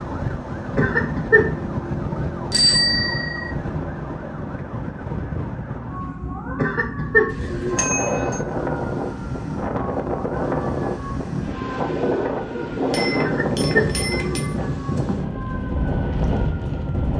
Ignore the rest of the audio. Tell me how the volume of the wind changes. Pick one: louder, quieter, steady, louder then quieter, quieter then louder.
steady.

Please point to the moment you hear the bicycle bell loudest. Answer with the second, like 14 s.
3 s.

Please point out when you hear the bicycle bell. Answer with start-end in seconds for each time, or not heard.
2.5-3.5, 7.8-8.4, 12.9-14.5.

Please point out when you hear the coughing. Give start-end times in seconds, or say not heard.
0.8-1.5, 6.5-8.4, 13.2-14.7.